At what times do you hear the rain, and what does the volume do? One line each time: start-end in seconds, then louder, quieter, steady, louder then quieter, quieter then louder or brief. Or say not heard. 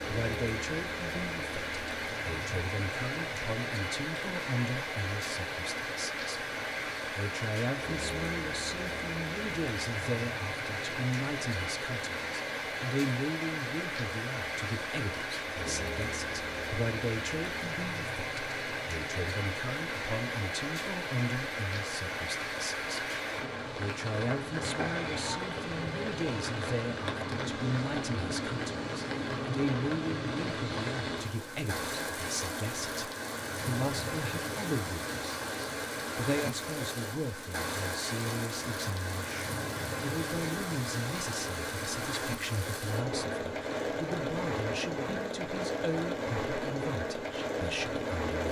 0.0-48.4 steady.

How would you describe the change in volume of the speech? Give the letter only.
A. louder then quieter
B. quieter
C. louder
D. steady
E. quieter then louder
D.